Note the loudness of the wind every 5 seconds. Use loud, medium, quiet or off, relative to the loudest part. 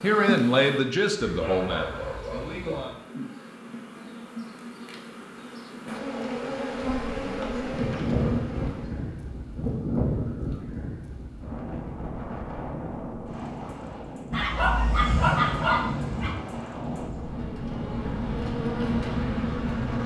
off, loud, loud, loud.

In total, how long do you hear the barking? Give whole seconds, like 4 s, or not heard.
4 s.